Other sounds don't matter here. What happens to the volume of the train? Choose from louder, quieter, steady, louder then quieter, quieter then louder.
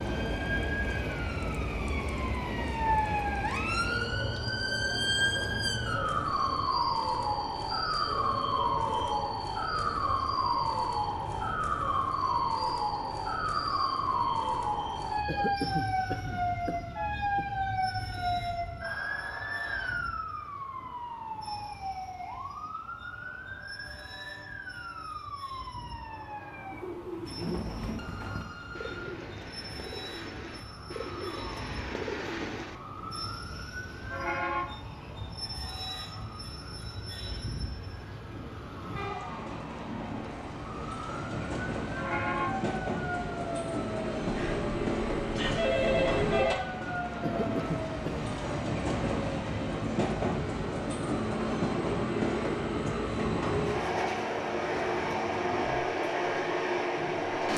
quieter then louder.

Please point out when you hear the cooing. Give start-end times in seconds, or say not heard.
26.6-32.8.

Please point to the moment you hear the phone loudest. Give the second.
46 s.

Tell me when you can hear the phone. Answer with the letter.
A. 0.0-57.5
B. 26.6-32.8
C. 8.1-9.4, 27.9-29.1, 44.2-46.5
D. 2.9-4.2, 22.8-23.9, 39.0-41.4
C.